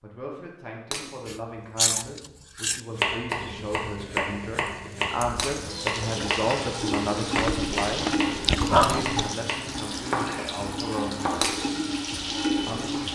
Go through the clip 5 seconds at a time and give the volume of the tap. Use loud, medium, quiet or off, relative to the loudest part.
off, loud, loud.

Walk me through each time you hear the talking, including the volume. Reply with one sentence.
You can hear the talking from 0.0 to 11.2 s, getting louder then quieter; and briefly from 12.7 to 13.1 s.